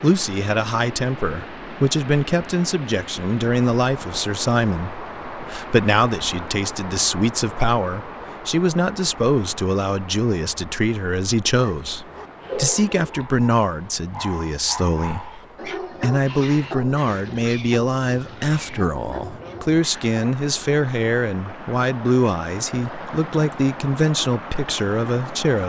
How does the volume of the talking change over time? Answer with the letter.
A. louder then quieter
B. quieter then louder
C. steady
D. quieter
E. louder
C.